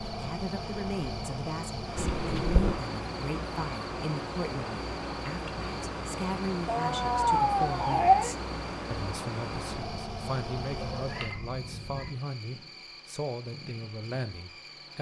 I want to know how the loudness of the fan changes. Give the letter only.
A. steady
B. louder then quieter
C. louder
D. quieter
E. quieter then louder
D.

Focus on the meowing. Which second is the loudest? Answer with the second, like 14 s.
8 s.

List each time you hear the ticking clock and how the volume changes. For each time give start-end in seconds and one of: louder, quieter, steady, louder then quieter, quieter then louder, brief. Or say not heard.
not heard.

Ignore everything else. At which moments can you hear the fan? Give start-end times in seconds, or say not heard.
0.0-14.9.